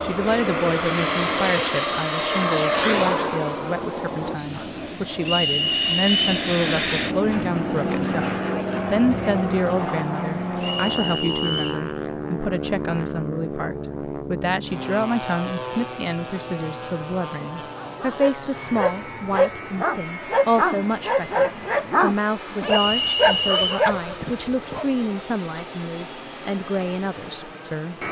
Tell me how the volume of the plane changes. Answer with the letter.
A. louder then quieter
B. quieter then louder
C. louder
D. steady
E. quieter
E.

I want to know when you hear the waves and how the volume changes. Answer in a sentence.
The waves can't be heard in this clip.